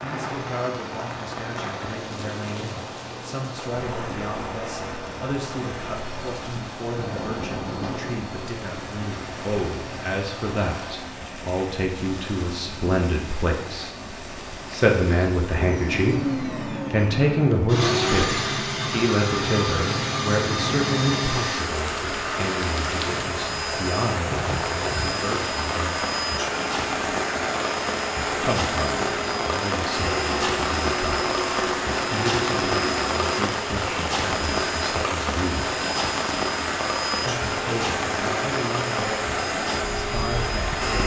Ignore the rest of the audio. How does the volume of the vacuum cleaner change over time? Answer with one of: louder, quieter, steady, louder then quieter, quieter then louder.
louder.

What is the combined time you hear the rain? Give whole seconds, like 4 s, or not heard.
41 s.